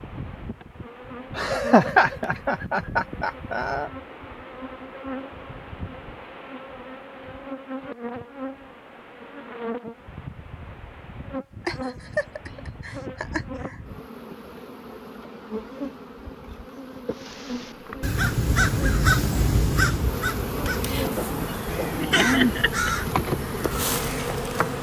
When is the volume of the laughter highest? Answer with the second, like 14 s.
2 s.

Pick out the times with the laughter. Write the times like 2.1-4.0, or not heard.
1.4-3.9, 11.7-13.8, 22.0-22.9.